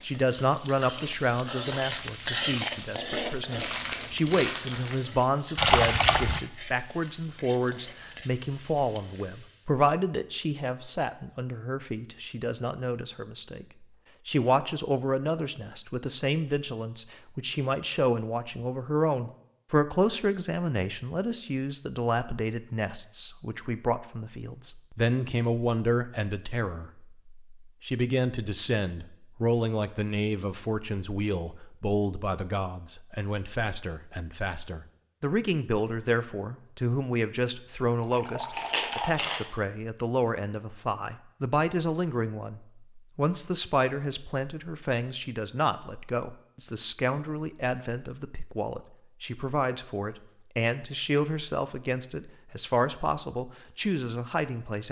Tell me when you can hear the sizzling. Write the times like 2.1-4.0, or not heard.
0.0-9.8.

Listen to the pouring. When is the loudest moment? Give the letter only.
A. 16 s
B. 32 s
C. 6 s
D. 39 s
C.